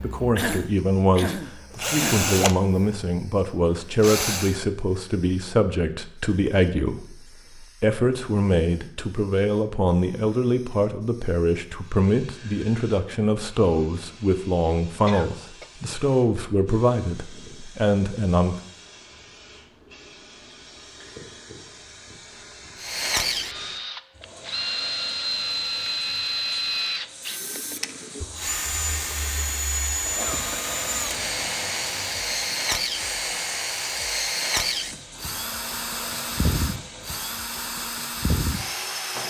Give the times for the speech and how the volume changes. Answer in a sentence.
You can hear the speech from 0.0 to 18.6 s, at a steady volume.